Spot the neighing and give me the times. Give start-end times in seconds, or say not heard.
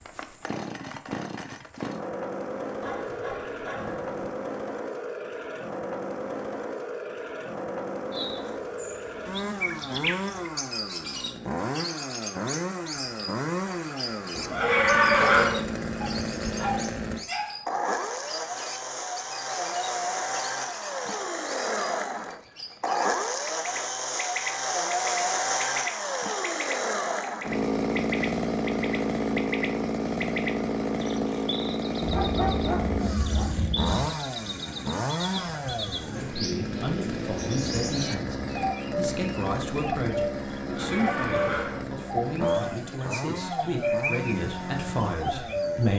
14.3-15.6, 40.6-41.9.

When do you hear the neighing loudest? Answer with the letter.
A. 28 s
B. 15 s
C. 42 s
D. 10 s
B.